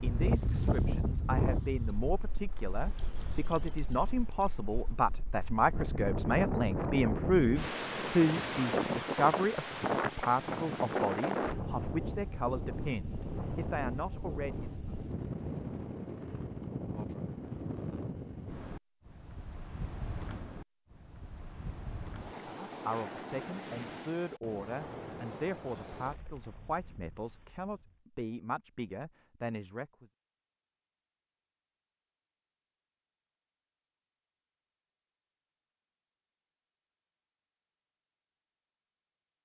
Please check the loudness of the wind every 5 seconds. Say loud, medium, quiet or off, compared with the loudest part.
loud, loud, loud, medium, medium, quiet, off, off.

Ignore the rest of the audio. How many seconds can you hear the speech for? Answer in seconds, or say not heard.
22 s.